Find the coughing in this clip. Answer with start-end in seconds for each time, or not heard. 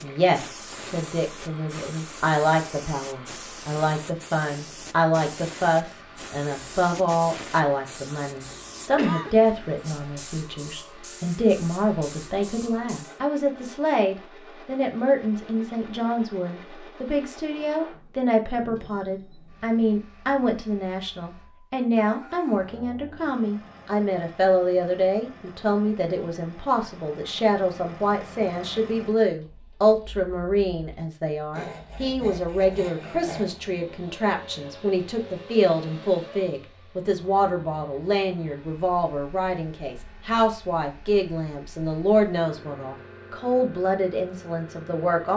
8.4-9.3.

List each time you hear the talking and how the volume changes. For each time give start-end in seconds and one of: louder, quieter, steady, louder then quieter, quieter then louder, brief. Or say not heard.
0.0-45.3 steady.